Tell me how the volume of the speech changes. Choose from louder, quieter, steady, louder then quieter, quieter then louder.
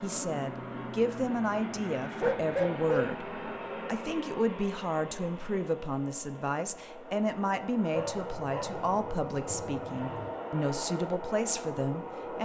steady.